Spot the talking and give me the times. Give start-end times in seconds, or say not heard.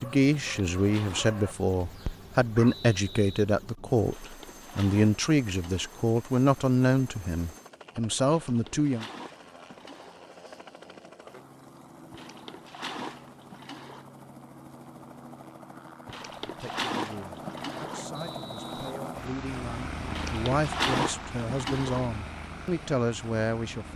0.0-9.1, 16.4-23.9.